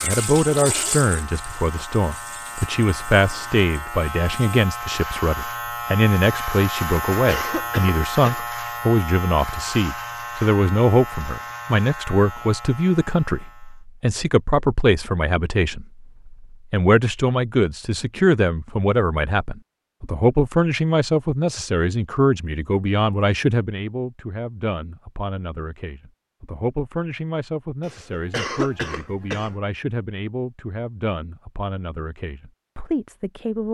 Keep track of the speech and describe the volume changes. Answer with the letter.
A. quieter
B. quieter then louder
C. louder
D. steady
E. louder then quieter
A.